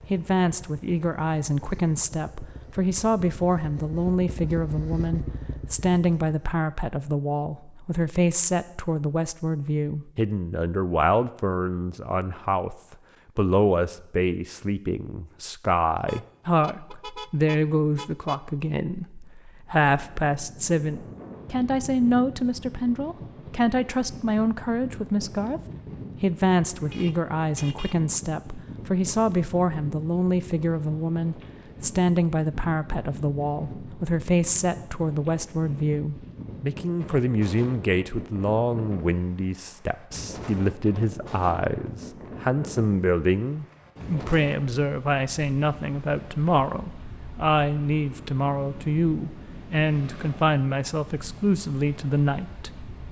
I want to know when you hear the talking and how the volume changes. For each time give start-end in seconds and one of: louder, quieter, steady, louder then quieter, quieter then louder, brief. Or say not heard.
0.1-25.6 steady
26.2-52.7 steady.